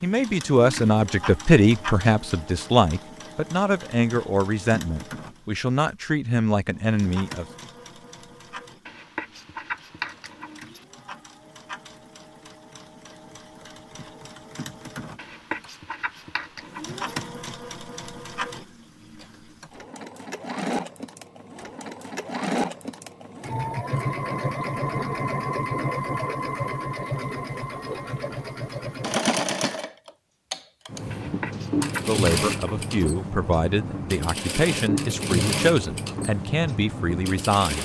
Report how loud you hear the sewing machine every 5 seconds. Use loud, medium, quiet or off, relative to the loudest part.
medium, quiet, quiet, medium, loud, loud, loud, loud.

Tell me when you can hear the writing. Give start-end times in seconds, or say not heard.
8.8-10.8, 15.2-17.1, 31.1-33.1.